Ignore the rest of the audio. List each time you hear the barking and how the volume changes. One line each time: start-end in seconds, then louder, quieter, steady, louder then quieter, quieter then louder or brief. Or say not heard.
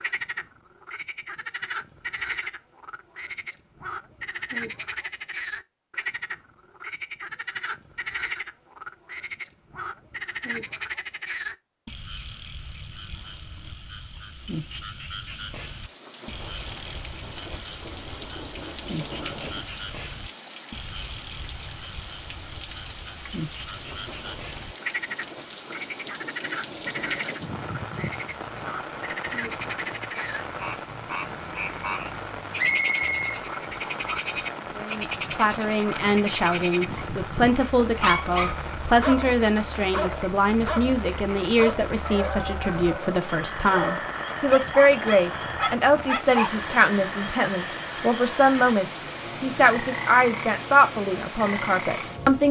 37.9-46.6 steady.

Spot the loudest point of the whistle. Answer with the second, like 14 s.
33 s.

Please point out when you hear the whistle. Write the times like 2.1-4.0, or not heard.
32.5-34.1.